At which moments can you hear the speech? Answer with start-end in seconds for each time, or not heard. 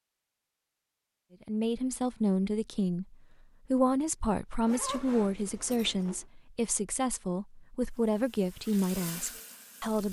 1.4-10.0.